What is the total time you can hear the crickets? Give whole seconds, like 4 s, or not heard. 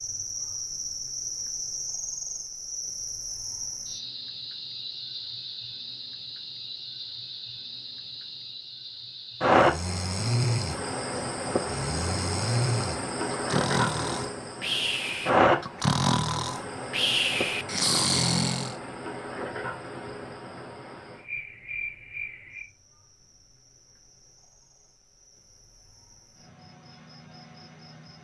28 s.